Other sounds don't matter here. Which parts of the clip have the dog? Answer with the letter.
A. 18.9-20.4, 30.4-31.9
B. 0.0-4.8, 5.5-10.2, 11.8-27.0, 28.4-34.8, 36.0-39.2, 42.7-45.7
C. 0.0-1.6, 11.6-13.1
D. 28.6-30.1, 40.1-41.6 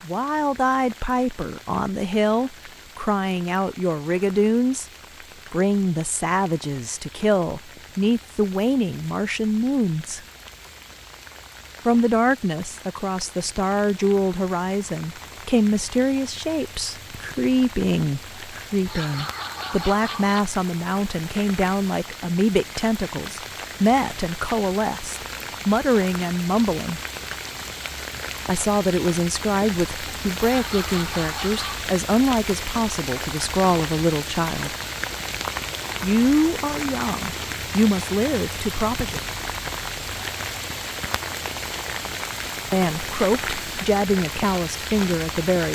A.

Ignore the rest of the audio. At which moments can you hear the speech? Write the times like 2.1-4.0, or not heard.
0.0-4.8, 5.5-10.2, 11.8-27.0, 28.4-34.8, 36.0-39.2, 42.7-45.7.